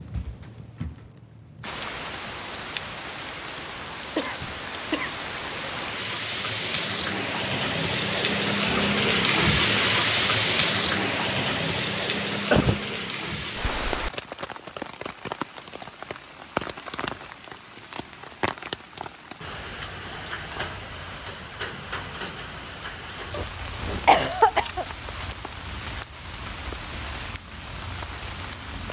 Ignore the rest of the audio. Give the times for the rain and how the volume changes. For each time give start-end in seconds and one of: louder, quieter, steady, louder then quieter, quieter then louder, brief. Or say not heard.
0.0-28.8 louder then quieter.